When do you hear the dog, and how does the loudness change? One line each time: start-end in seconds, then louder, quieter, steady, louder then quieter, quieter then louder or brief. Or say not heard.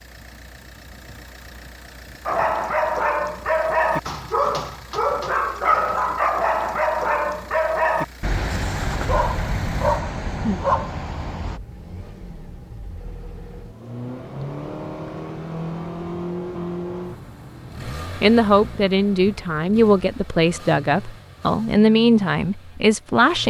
2.2-11.6 steady.